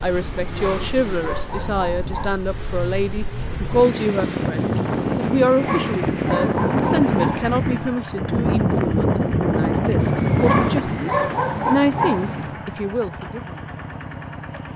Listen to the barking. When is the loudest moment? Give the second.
11 s.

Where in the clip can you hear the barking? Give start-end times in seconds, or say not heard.
0.1-2.4, 5.2-8.1, 9.9-12.6.